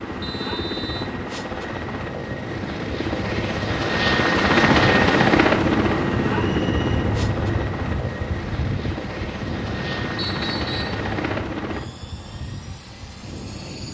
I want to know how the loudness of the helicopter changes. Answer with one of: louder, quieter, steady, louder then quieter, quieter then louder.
louder then quieter.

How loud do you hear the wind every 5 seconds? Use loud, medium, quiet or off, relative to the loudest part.
medium, loud, medium.